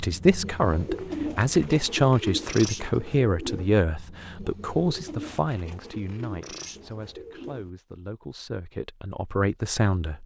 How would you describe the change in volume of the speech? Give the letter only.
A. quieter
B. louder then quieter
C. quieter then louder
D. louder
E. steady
C.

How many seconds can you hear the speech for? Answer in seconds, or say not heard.
10 s.